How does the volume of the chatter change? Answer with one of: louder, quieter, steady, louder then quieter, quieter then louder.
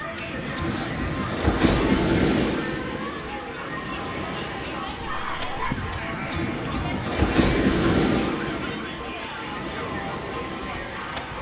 steady.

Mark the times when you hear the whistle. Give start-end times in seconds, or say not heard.
not heard.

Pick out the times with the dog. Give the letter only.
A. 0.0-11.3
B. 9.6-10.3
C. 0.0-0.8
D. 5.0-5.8
D.